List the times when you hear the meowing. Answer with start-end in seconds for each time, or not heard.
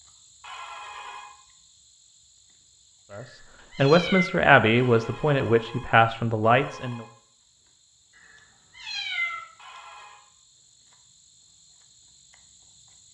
3.1-4.3, 8.2-9.4.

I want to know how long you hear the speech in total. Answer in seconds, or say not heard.
4 s.